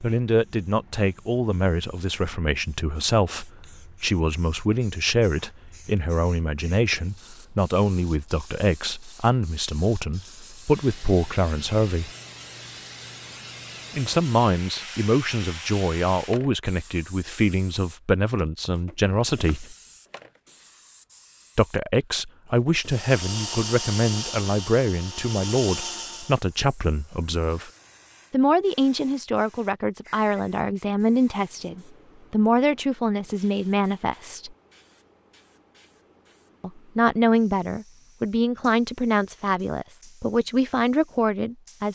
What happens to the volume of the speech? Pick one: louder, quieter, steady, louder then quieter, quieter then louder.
steady.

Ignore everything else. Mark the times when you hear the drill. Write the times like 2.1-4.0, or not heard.
22.8-26.4.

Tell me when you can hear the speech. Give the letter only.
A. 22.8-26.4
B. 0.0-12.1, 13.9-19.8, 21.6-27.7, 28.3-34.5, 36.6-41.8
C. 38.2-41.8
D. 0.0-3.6
B.